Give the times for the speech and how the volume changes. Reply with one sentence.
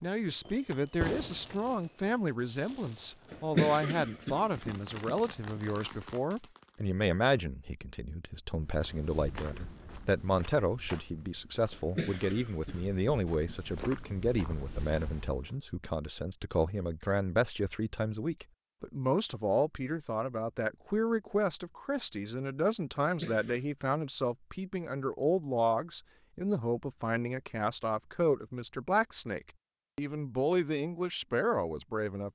The speech can be heard from 0.0 to 32.2 s, at a steady volume.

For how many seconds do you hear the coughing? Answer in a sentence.
You can hear the coughing for 5 seconds altogether.